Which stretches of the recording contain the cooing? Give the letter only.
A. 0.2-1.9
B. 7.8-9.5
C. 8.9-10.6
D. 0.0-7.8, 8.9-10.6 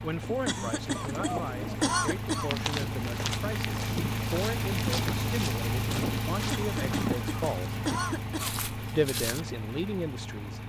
A.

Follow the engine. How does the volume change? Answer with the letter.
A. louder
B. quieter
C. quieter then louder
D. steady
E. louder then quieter
E.